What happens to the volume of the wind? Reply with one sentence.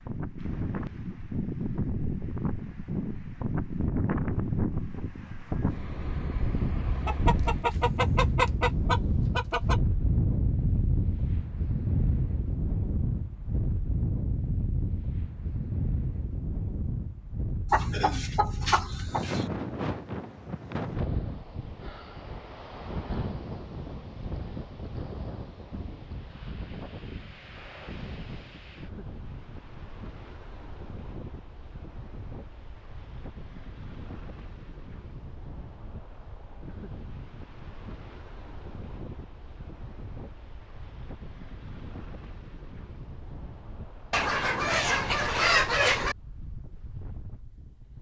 The loudness of the wind goes down.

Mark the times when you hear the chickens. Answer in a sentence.
The chickens can be heard from 7.0 to 9.8 s, from 17.7 to 19.4 s and from 44.1 to 46.1 s.